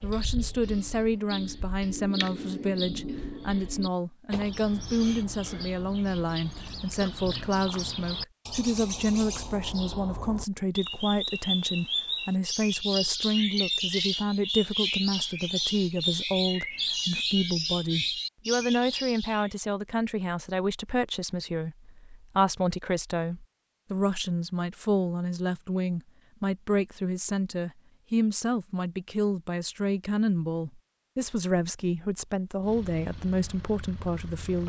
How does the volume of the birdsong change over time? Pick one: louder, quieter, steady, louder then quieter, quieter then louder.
louder.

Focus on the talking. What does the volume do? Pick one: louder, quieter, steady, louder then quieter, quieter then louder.
steady.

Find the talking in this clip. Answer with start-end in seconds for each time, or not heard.
0.0-34.6.